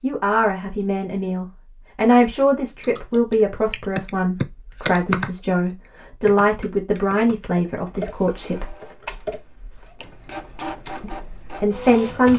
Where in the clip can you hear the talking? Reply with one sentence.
You can hear the talking from 0.0 to 8.8 s and from 11.0 to 12.3 s.